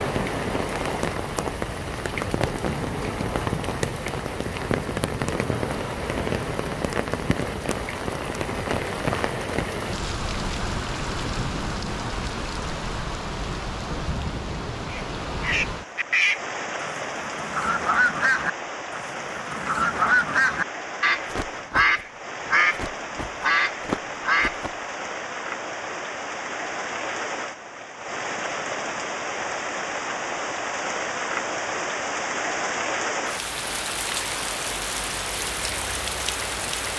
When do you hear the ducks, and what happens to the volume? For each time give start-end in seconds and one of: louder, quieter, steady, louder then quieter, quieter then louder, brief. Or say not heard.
14.8-24.7 steady.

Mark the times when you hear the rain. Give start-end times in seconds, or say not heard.
0.0-36.9.